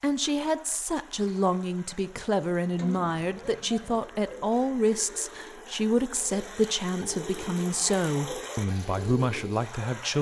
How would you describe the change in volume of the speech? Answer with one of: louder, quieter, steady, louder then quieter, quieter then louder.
steady.